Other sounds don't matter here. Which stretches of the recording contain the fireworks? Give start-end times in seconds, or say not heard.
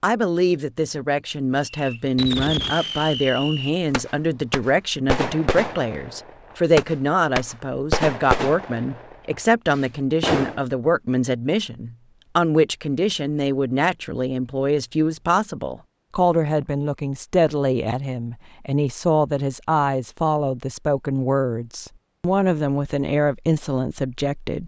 1.6-10.6.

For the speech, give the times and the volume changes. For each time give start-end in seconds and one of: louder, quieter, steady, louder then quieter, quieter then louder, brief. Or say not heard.
0.0-24.6 steady.